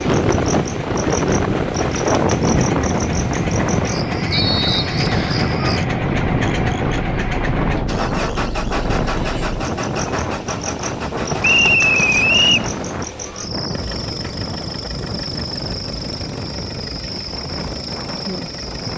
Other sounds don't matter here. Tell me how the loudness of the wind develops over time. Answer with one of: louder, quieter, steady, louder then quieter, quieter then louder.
quieter.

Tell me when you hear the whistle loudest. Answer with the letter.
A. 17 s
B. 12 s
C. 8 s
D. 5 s
B.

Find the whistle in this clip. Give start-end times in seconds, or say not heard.
4.3-5.4, 11.4-12.7.